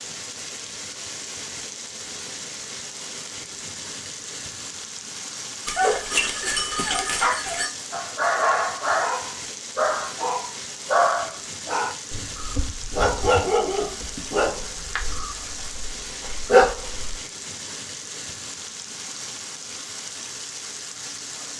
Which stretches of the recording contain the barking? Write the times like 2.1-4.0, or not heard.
5.7-17.1.